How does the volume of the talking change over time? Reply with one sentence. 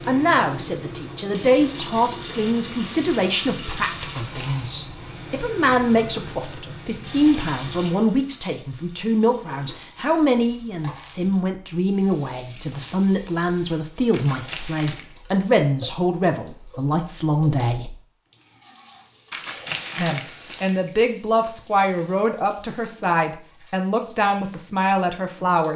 The loudness of the talking stays about the same.